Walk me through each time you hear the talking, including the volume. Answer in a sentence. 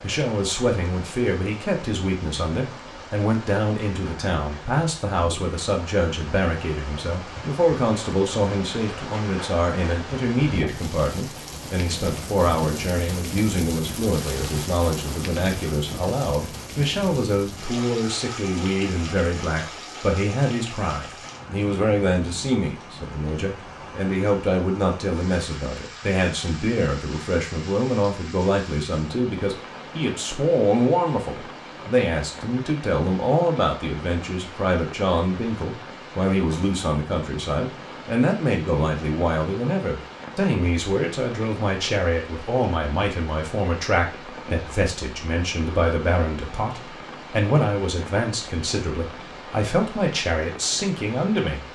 You can hear the talking from 0.0 to 51.6 s, at a steady volume.